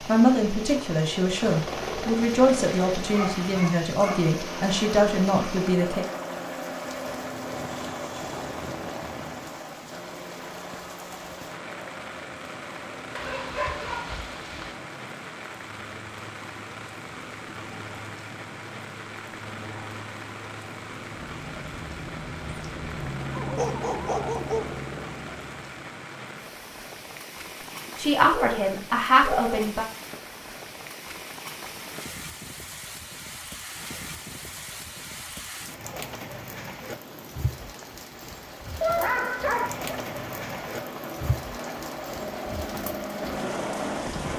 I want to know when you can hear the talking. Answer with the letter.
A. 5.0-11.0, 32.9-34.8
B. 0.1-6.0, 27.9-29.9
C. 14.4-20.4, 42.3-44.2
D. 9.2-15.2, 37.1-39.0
B.